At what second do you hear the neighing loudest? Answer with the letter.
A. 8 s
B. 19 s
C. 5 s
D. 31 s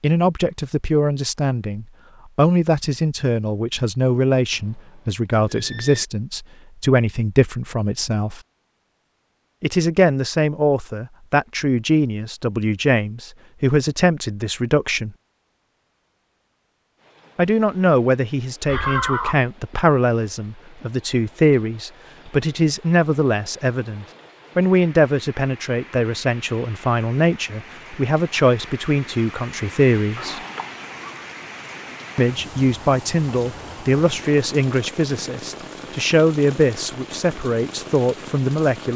B.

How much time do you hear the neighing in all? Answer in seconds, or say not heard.
3 s.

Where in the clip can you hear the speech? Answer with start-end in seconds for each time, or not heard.
0.0-8.4, 9.6-15.1, 17.4-30.4, 32.1-38.9.